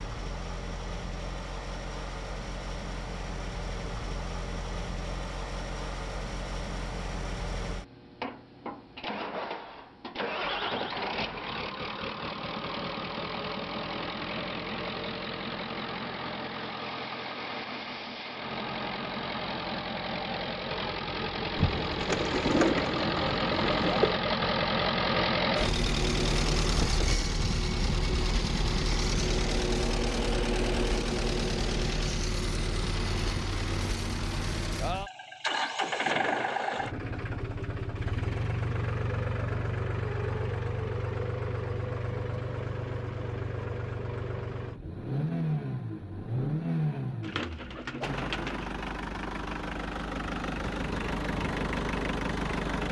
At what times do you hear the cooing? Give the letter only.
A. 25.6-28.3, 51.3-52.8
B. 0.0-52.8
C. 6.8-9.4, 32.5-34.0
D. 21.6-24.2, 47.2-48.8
D.